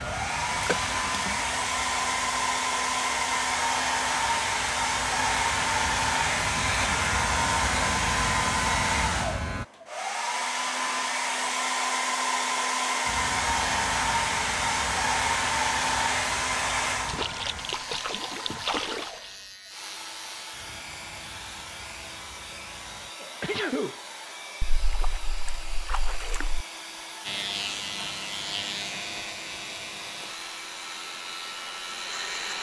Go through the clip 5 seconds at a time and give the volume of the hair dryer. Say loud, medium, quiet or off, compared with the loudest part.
loud, loud, loud, loud, quiet, quiet, quiet.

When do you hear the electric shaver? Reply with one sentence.
The electric shaver can be heard from 0.0 to 9.7 s, from 13.1 to 23.1 s and from 27.2 to 32.5 s.